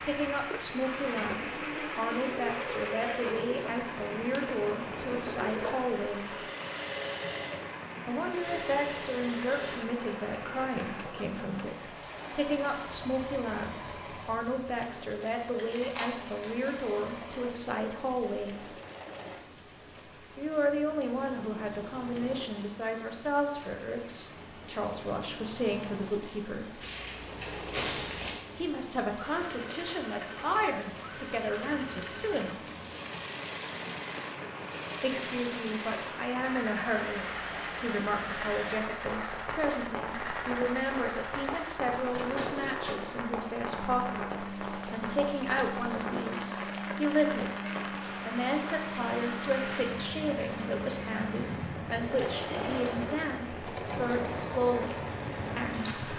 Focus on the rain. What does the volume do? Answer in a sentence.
The volume of the rain goes down, then up.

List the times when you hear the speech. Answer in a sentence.
The speech can be heard from 0.0 to 6.3 s, from 8.1 to 18.7 s, from 20.4 to 26.8 s, from 28.6 to 32.6 s and from 35.0 to 56.1 s.